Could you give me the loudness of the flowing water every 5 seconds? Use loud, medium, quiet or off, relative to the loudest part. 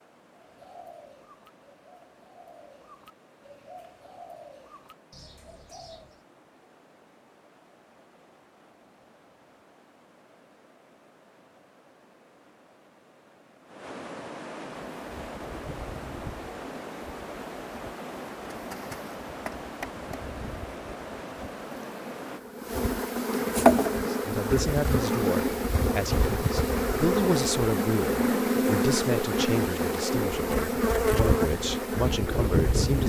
quiet, quiet, medium, loud, loud, off, off.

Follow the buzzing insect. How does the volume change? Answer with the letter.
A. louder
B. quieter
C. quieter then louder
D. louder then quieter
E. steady
A.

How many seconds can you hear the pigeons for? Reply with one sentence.
The pigeons can be heard for 6 seconds in total.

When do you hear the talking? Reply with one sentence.
You can hear the talking from 24.1 to 33.0 s.